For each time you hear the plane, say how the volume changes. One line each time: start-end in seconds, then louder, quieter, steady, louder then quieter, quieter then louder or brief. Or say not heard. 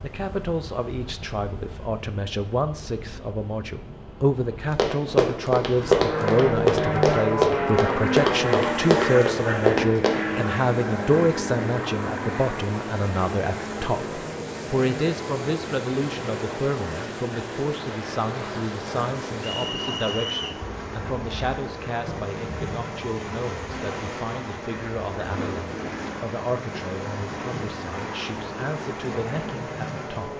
5.6-30.3 quieter.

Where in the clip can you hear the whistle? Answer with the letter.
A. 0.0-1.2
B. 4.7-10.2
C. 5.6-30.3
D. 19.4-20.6
D.